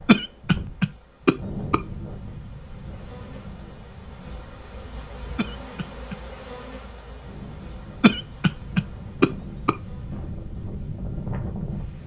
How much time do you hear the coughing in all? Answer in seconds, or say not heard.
4 s.